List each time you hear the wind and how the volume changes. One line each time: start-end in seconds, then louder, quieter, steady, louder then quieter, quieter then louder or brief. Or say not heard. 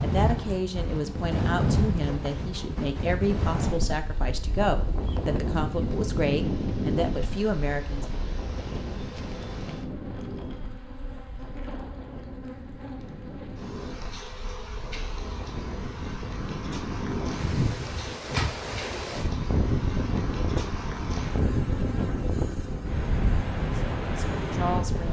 0.0-25.0 quieter then louder.